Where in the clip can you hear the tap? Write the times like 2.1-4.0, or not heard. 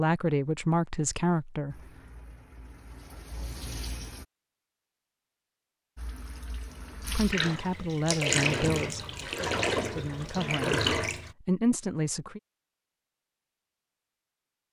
1.7-4.2, 6.0-11.3.